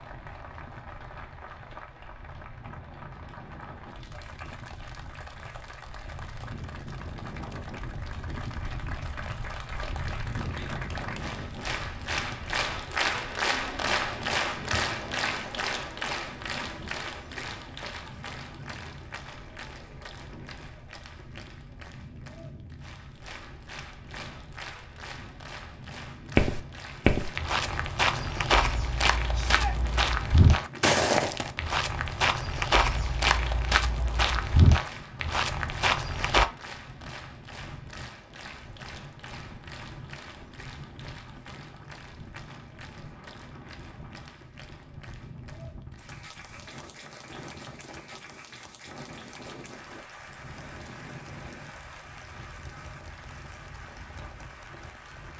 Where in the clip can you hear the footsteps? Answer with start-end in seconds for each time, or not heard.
26.4-36.5.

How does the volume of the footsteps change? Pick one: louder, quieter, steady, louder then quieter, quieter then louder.
steady.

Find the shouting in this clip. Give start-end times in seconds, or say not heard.
29.3-29.8.